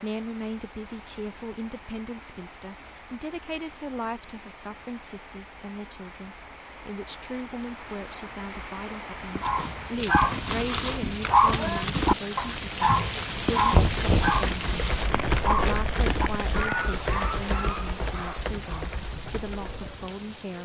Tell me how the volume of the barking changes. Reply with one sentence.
The loudness of the barking goes down.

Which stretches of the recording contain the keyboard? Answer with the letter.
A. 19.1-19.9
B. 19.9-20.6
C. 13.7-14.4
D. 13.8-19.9
D.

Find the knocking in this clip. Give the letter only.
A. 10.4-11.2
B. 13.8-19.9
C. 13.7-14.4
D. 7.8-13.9
C.